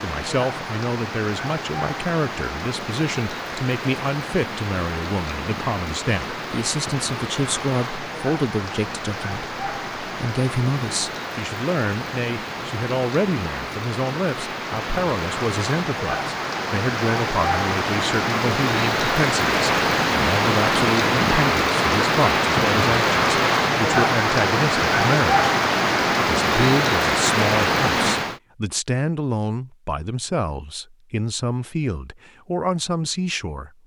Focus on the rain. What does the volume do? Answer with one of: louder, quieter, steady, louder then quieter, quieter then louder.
louder.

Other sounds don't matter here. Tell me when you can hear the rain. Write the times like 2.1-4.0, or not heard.
0.0-28.4.